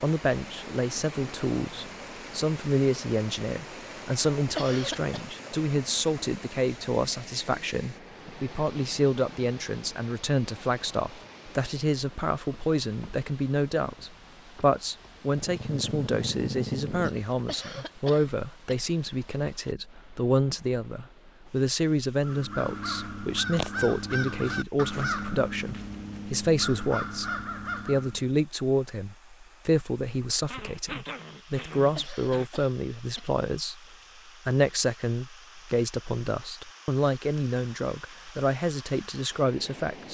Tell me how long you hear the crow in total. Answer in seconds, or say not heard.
6 s.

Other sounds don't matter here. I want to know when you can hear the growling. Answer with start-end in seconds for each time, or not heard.
15.3-17.2, 30.5-32.5.